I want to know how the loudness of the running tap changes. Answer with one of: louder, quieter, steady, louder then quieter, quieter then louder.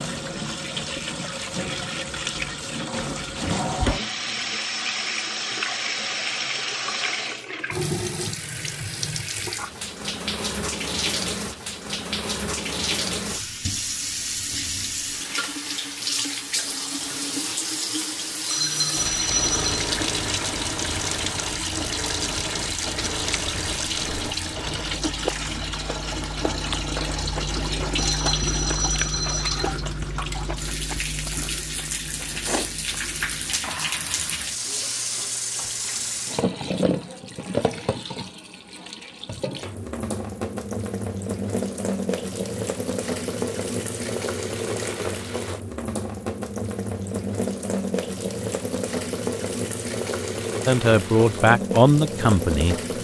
steady.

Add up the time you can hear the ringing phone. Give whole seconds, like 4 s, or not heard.
3 s.